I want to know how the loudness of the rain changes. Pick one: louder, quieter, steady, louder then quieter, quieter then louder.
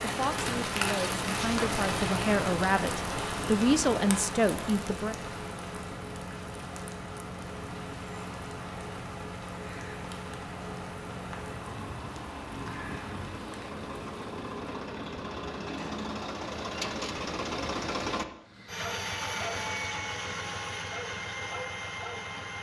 quieter.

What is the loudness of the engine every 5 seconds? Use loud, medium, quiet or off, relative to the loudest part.
medium, medium, medium, loud, loud.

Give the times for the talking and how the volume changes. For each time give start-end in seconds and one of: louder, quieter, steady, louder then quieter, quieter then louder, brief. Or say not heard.
0.0-5.2 louder.